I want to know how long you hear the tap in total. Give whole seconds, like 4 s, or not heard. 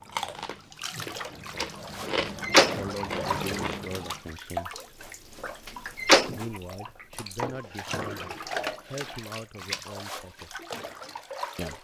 12 s.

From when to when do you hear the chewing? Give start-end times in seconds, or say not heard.
0.0-4.2.